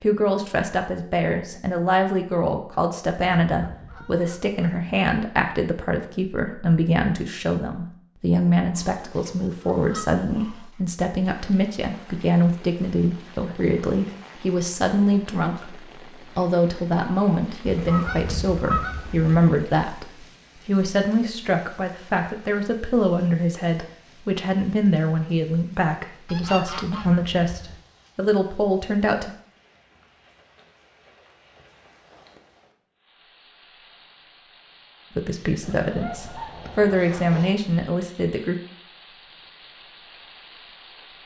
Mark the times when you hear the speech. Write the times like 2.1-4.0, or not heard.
0.0-29.3, 35.1-38.5.